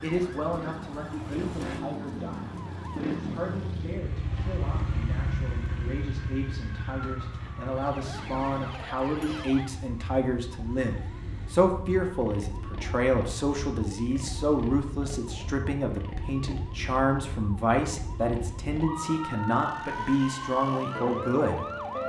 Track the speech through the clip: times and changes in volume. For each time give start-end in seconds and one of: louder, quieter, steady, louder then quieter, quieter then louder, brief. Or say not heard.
0.0-22.0 louder.